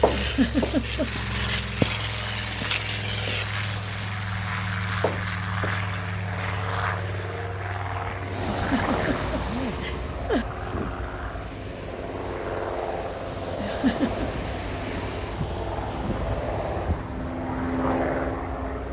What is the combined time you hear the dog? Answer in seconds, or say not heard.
not heard.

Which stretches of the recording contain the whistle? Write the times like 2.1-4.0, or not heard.
not heard.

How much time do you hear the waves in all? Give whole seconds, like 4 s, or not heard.
11 s.